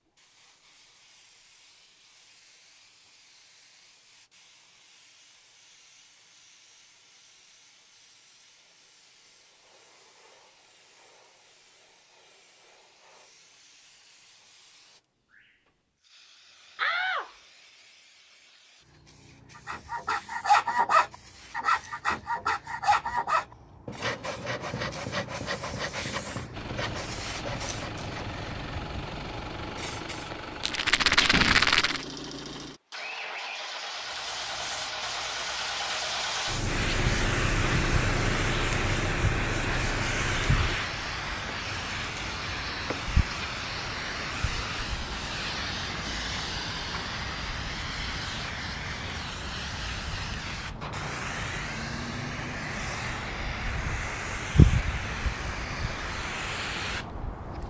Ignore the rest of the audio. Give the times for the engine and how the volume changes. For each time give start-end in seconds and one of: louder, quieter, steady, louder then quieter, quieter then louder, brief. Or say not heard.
26.5-40.8 louder.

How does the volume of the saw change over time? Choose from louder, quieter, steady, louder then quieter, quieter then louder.
quieter.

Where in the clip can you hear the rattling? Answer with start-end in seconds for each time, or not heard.
30.6-32.0.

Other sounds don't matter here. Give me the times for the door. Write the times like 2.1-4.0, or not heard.
16.8-17.3, 30.3-32.2.